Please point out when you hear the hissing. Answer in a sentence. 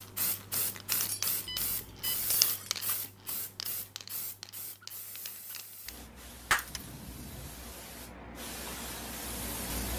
You can hear the hissing from 0.0 to 9.9 s.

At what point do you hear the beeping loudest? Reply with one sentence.
The volume of the beeping peaks at 2 seconds.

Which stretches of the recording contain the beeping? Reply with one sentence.
You can hear the beeping from 1.4 to 2.3 s and from 6.7 to 7.5 s.